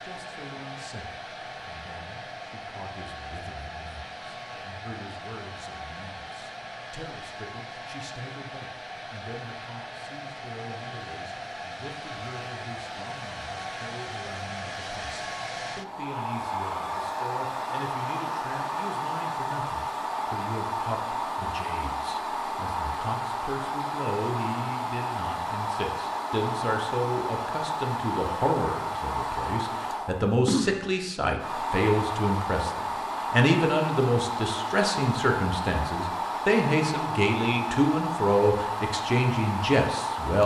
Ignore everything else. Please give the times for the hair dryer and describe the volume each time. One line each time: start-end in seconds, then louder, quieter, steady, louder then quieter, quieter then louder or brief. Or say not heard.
0.0-40.4 louder.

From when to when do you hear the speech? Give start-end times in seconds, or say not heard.
0.0-40.4.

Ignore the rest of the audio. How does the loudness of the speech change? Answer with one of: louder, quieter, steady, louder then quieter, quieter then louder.
louder.